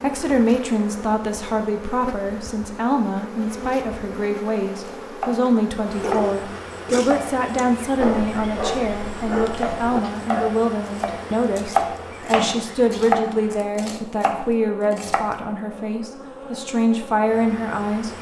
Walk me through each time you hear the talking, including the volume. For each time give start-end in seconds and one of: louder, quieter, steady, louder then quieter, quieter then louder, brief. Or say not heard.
0.0-18.1 steady.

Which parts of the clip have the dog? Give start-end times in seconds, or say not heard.
6.0-10.6.